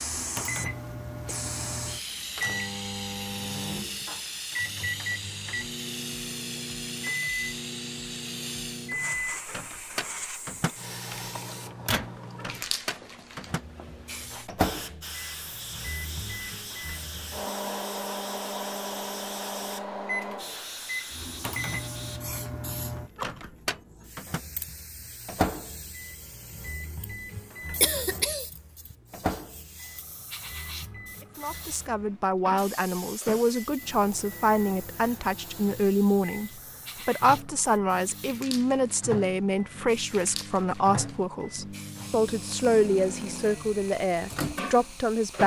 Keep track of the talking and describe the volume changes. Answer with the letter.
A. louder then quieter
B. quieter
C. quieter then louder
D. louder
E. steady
E.